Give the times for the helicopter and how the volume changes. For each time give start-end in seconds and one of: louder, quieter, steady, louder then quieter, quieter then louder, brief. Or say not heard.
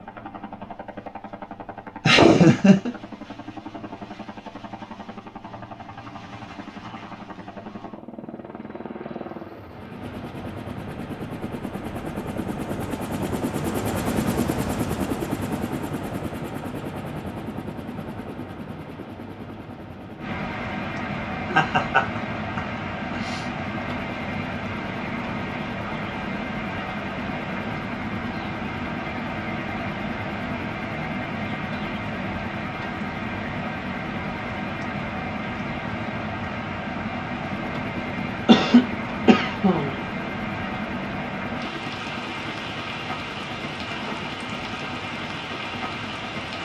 0.0-46.6 louder then quieter.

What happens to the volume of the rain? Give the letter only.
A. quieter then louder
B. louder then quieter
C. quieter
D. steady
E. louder
D.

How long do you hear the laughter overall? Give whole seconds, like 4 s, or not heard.
4 s.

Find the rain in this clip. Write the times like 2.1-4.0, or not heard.
20.1-46.6.